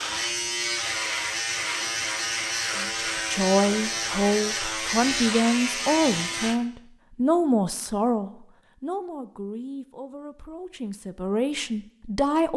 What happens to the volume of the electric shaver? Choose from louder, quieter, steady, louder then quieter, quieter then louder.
steady.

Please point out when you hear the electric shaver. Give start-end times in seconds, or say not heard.
0.0-6.6.